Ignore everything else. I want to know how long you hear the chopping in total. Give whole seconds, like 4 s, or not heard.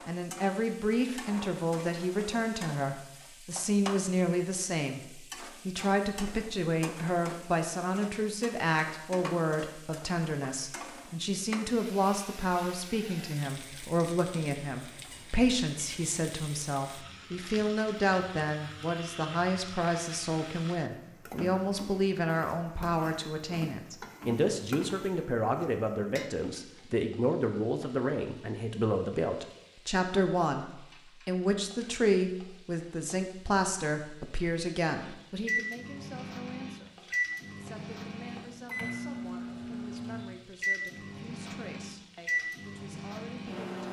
not heard.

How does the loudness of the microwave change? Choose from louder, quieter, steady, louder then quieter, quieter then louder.
steady.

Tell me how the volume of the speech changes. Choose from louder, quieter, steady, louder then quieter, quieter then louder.
quieter.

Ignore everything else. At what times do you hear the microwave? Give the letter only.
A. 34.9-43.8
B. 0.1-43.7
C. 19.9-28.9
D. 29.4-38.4
A.